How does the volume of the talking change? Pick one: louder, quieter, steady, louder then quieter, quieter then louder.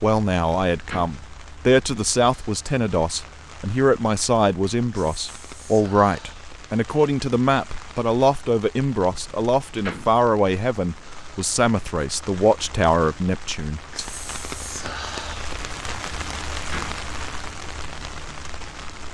steady.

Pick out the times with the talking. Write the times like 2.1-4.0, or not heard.
0.0-14.1.